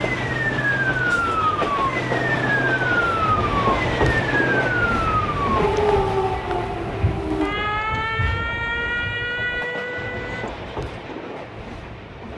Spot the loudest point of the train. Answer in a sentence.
The loudest moment of the train is at 4 seconds.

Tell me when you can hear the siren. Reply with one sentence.
You can hear the siren from 0.0 to 10.5 s.